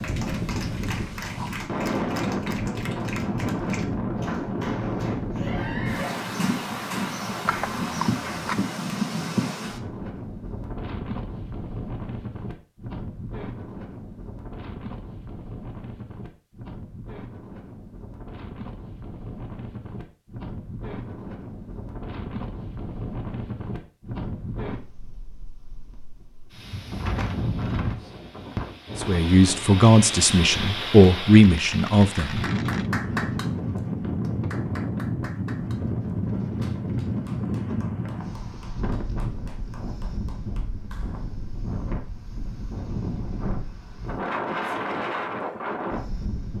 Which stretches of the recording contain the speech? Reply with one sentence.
You can hear the speech from 28.9 to 32.5 s.